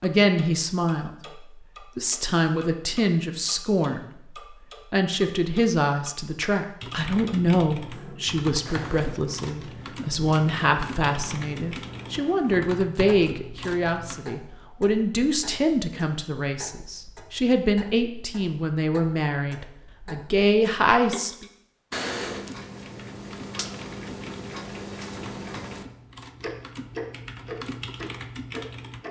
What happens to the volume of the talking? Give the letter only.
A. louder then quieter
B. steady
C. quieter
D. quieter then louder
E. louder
B.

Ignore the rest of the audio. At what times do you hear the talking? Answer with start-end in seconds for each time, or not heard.
0.0-21.4.